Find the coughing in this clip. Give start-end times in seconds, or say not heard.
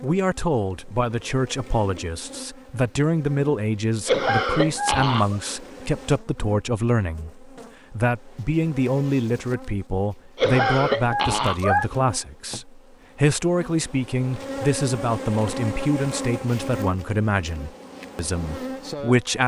4.0-5.3, 10.3-11.8.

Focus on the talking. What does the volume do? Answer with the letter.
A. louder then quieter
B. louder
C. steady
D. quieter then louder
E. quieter
C.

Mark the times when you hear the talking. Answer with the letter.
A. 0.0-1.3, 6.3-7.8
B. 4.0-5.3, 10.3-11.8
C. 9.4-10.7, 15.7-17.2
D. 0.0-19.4
D.